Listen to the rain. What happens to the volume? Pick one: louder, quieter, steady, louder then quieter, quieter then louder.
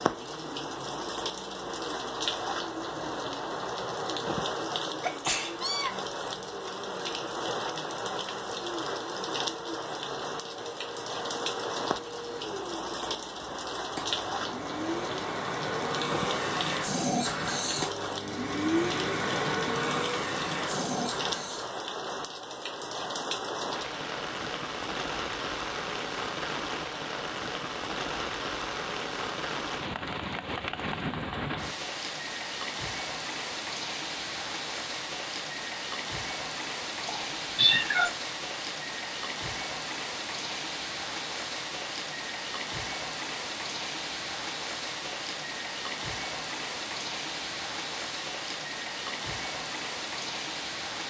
steady.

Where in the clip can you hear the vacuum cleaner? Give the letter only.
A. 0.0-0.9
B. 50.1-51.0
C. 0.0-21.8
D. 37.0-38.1
C.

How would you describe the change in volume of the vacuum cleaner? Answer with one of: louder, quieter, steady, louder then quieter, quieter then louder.
louder.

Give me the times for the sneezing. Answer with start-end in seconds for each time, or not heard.
5.0-6.0.